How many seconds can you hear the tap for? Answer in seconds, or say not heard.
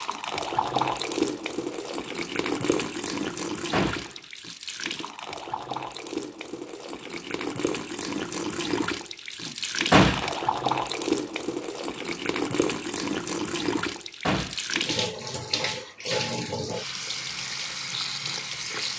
19 s.